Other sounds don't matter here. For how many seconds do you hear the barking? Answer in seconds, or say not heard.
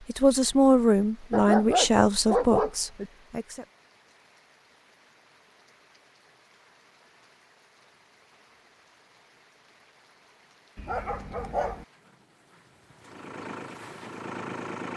3 s.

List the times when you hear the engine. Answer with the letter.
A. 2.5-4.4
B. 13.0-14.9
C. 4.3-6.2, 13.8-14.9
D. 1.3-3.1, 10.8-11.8
B.